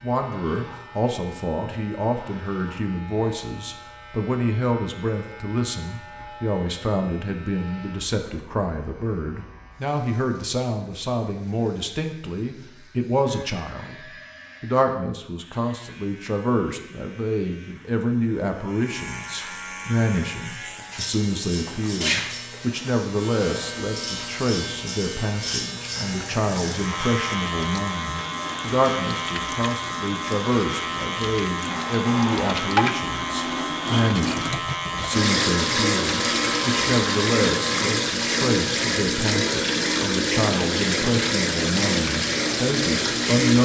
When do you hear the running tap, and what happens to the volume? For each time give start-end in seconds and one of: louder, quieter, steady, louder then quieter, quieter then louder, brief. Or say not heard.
25.9-43.6 louder.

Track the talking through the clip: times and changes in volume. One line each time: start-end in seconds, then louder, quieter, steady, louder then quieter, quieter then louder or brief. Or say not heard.
0.0-43.6 steady.